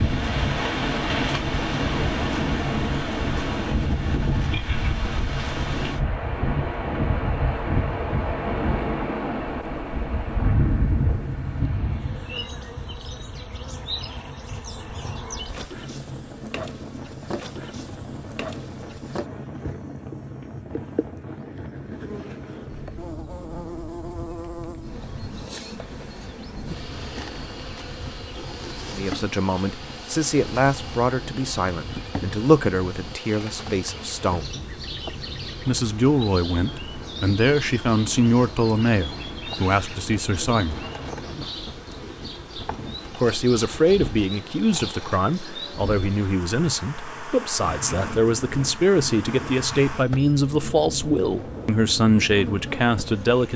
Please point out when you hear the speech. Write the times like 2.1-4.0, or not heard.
28.9-34.5, 35.6-40.8, 43.1-53.5.